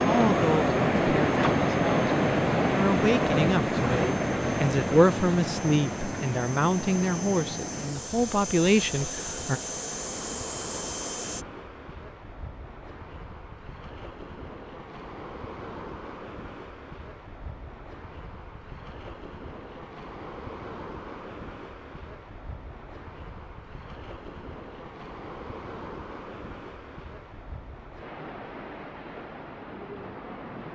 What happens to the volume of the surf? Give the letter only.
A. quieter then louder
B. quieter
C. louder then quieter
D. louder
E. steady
B.